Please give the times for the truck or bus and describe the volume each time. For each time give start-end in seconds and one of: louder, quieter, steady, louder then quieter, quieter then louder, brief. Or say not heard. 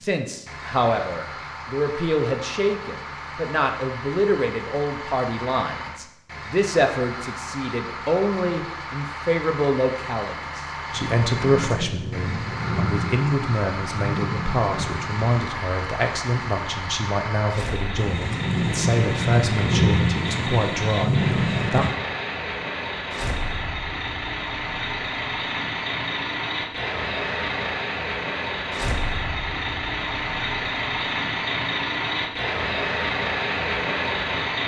0.0-34.6 louder.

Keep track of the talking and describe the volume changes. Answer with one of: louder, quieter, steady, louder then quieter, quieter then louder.
steady.